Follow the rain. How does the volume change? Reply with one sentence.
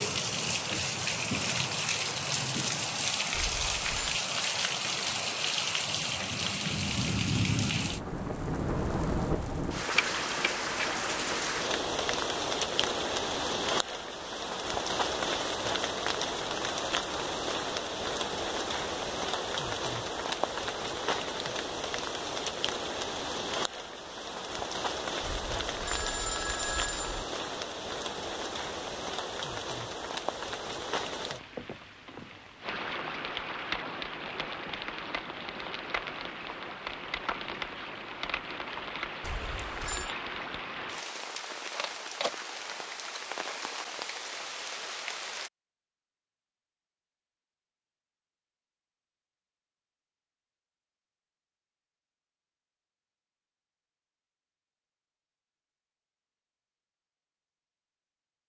The loudness of the rain goes down.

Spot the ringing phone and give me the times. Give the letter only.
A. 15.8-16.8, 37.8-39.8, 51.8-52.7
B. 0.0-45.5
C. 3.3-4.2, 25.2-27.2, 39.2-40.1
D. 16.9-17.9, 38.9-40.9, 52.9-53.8
C.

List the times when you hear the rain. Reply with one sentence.
You can hear the rain from 0.0 to 45.5 s.